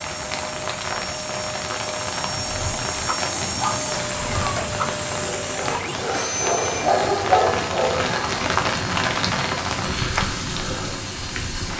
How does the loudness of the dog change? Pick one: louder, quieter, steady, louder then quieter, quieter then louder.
quieter then louder.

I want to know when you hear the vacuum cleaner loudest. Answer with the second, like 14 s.
4 s.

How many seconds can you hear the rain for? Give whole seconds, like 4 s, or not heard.
12 s.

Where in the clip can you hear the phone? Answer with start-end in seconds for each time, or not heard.
6.1-6.9.